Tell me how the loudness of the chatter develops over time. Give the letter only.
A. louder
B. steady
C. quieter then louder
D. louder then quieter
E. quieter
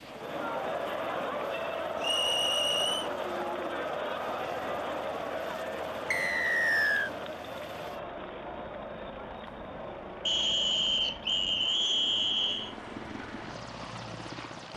E.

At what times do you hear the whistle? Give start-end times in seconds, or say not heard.
2.0-3.1, 6.1-7.1, 10.2-12.8.